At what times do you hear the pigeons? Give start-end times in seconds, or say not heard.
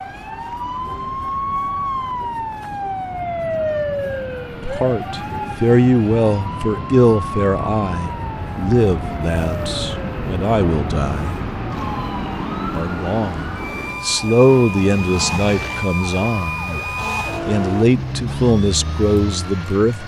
not heard.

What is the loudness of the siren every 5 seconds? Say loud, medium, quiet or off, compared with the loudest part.
loud, medium, medium, loud.